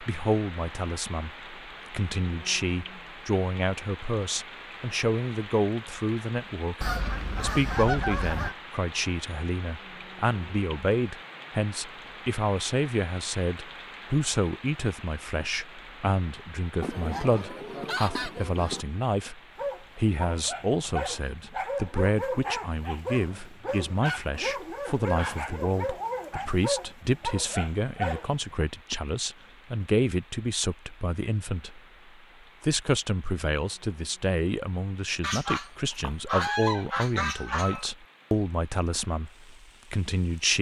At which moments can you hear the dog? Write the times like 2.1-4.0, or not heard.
19.6-28.6.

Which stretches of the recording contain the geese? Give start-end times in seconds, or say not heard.
6.8-8.6, 16.8-18.9, 35.2-37.9.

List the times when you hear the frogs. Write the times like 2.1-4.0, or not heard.
not heard.